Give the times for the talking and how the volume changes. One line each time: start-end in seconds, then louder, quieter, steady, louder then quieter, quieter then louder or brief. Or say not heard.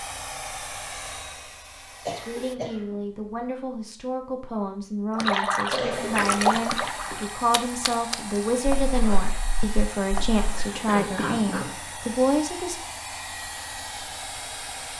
2.1-12.8 louder.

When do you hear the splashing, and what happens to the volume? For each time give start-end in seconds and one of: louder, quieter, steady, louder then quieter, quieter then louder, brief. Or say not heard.
5.2-10.7 quieter.